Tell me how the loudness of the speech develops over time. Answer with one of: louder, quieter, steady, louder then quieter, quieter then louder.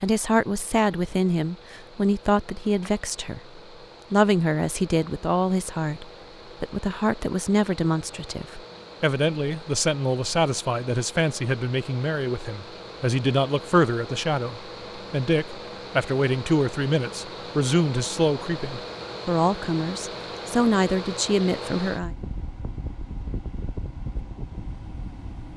steady.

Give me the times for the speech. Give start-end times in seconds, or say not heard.
0.0-22.1.